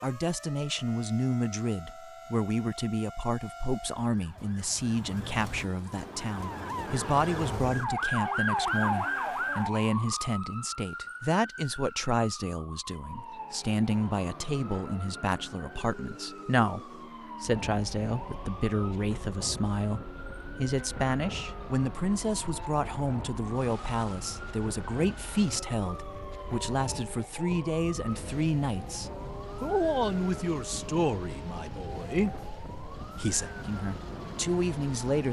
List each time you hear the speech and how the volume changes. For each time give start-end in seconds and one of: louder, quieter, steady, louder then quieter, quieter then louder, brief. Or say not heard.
0.0-35.2 steady.